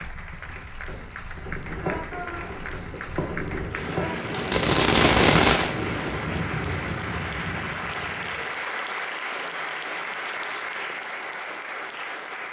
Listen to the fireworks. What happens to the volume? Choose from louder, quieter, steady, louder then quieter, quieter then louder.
louder.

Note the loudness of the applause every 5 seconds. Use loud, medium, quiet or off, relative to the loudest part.
medium, loud, loud.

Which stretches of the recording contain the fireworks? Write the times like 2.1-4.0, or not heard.
1.6-5.7.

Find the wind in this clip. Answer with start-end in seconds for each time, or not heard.
0.0-8.6.